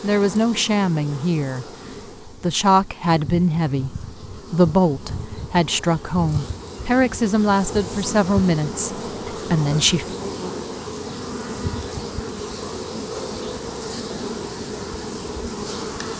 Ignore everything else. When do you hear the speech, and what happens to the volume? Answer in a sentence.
The speech can be heard briefly from 0.0 to 1.6 s; and from 2.2 to 10.2 s, at a steady volume.